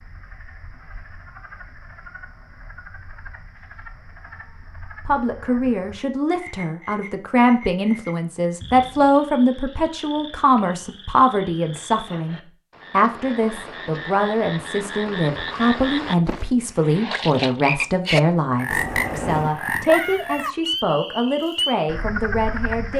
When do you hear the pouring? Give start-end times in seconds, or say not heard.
18.7-19.6.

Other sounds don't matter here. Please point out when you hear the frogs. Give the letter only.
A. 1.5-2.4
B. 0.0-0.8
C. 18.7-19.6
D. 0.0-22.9
D.